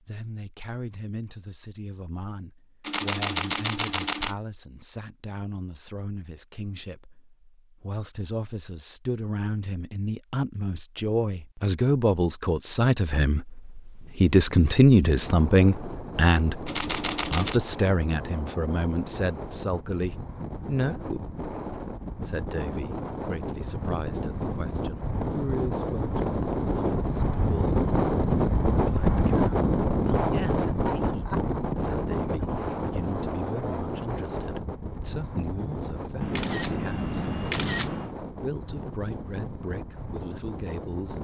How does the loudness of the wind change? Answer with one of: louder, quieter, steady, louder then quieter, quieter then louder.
louder then quieter.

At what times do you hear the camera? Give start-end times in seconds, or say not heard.
2.8-4.3, 16.6-17.6, 36.2-38.1.